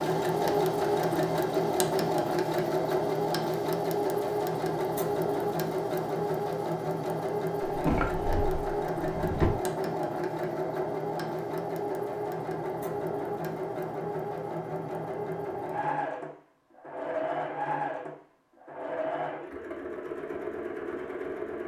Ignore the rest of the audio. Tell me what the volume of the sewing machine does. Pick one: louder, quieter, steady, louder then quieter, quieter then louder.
quieter.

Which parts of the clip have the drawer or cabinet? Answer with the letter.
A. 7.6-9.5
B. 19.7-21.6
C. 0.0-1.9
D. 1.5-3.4
A.